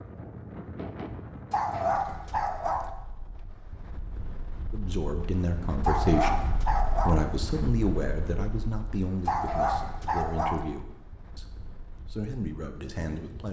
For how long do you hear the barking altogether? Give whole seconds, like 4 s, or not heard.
4 s.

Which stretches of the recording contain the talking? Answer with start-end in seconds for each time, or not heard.
4.7-13.4.